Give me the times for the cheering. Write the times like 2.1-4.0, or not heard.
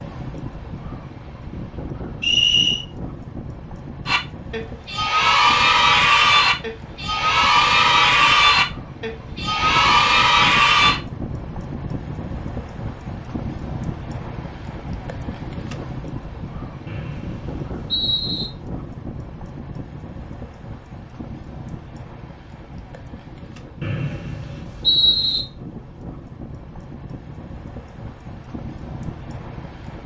4.0-11.0.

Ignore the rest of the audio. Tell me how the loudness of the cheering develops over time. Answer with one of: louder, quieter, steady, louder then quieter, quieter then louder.
steady.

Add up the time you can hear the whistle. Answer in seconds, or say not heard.
4 s.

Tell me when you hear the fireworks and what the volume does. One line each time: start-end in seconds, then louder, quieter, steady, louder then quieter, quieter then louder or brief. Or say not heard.
not heard.